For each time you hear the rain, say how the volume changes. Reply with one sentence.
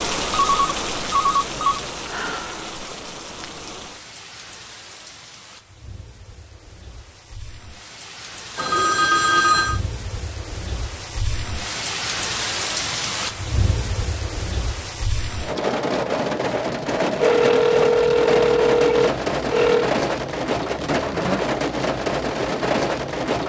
The rain can be heard from 0.0 to 23.4 s, getting quieter then louder.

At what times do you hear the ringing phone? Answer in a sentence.
You can hear the ringing phone from 0.3 to 1.8 s, from 8.6 to 9.8 s and from 17.2 to 19.9 s.